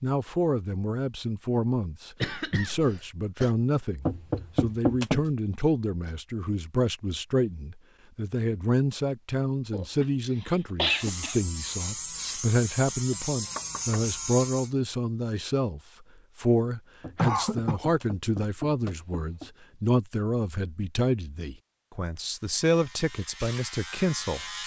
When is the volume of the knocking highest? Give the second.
5 s.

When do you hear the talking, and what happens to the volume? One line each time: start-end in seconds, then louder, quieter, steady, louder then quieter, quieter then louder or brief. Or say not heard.
0.0-24.4 steady.